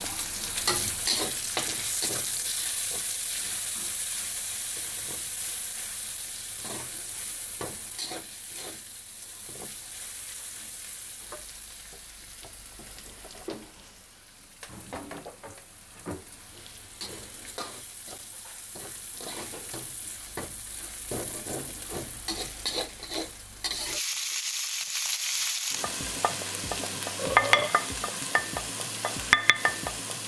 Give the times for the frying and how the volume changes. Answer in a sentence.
You can hear the frying from 0.0 to 30.2 s, getting quieter then louder.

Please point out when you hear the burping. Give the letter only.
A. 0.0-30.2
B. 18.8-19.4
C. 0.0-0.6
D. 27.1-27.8
D.